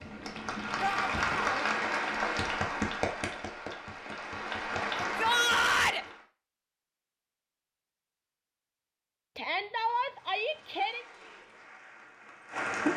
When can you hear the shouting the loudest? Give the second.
6 s.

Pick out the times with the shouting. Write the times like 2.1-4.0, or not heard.
0.8-1.6, 5.0-6.0, 9.3-11.1.